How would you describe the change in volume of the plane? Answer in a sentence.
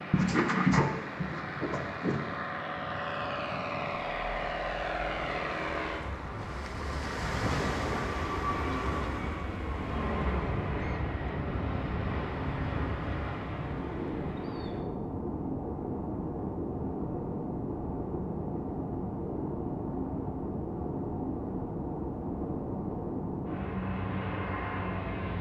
The loudness of the plane stays about the same.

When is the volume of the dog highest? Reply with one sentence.
The loudest moment of the dog is at 1 second.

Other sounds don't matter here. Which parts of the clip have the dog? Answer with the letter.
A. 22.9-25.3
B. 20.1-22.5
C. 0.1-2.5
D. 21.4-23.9
C.